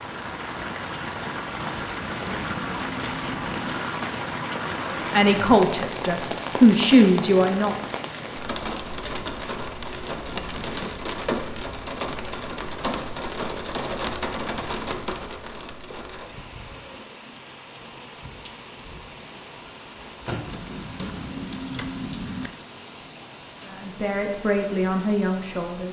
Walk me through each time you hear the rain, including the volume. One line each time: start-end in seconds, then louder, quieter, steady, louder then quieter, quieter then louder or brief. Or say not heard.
0.0-25.8 quieter.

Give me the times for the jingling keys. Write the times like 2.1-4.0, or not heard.
1.7-3.8, 10.2-11.0, 20.4-22.5.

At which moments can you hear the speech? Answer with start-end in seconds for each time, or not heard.
4.8-7.8, 23.6-25.8.